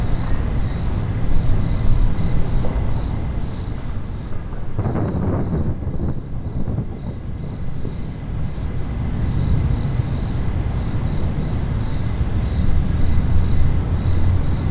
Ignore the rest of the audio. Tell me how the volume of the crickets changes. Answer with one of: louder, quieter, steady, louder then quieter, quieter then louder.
quieter then louder.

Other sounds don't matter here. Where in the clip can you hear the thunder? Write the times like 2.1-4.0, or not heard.
4.3-8.1.